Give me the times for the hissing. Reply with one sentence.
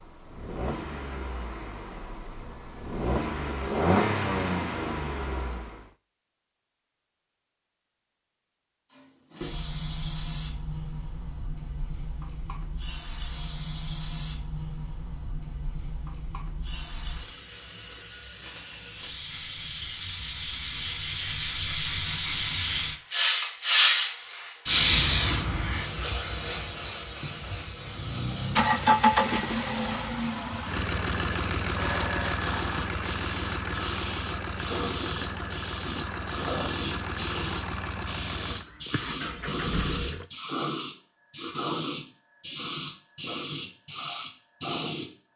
The hissing can be heard from 8.9 to 45.3 s.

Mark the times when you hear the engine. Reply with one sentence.
The engine can be heard from 0.0 to 5.8 s and from 27.8 to 40.2 s.